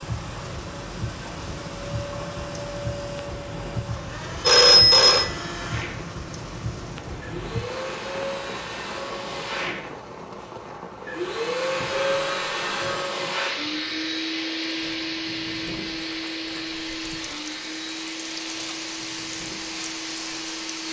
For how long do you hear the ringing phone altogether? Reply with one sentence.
You can hear the ringing phone for 2 seconds altogether.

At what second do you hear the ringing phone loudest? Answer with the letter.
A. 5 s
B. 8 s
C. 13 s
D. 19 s
A.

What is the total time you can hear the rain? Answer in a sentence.
You can hear the rain for 21 seconds altogether.